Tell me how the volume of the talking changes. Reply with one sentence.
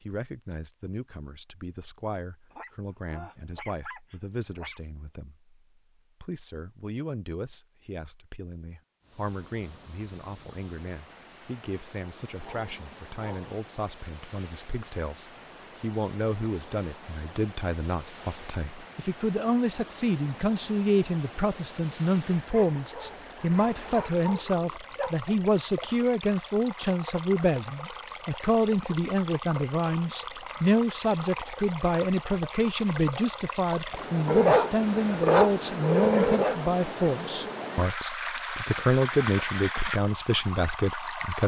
The loudness of the talking goes up.